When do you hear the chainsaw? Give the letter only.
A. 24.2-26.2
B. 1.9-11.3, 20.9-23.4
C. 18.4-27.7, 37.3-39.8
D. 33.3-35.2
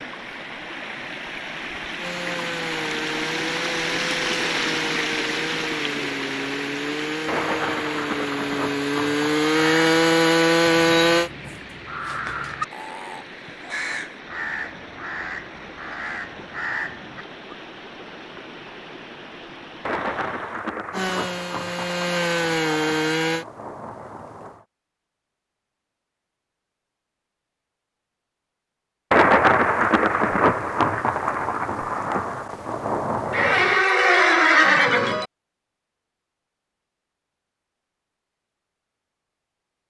B.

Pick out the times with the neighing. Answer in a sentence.
The neighing can be heard from 33.3 to 35.2 s.